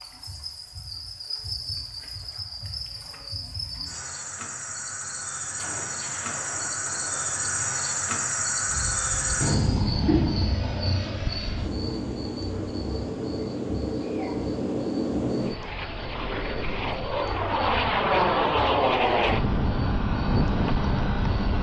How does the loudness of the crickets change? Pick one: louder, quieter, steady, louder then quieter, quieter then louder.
louder then quieter.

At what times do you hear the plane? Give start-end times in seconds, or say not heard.
8.7-21.5.